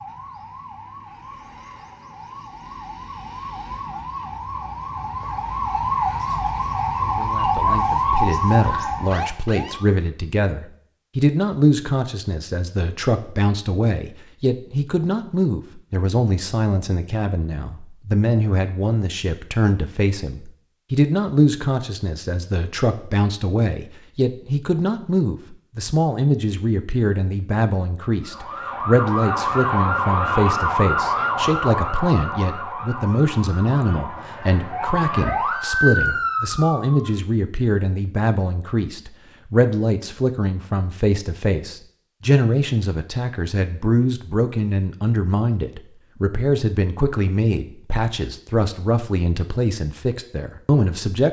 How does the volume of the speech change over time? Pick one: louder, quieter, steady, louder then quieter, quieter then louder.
steady.